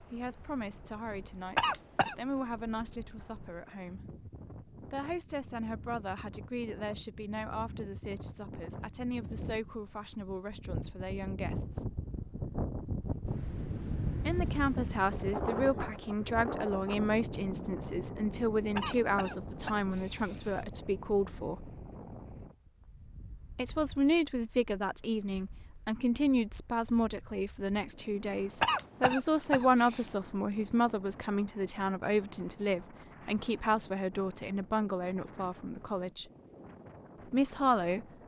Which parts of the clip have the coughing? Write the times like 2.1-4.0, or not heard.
1.6-2.1, 18.8-20.7, 28.6-30.0.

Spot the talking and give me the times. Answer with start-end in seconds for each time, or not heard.
0.0-11.9, 14.2-21.6, 23.6-36.2, 37.3-38.0.